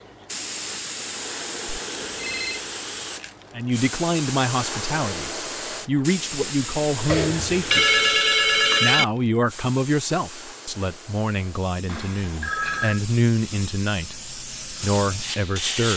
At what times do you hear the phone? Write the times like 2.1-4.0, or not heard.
1.6-2.6, 7.0-9.1, 11.8-13.0.